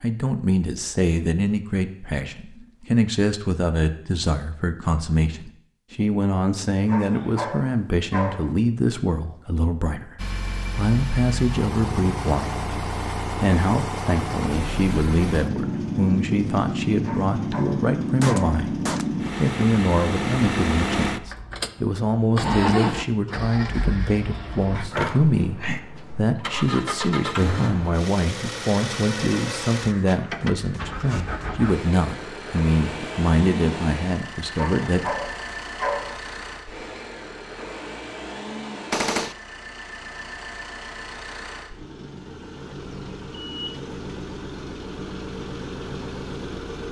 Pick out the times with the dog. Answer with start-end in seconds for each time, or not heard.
6.8-8.6, 17.1-18.6, 34.5-36.2.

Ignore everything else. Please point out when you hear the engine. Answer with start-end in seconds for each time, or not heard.
10.2-46.8.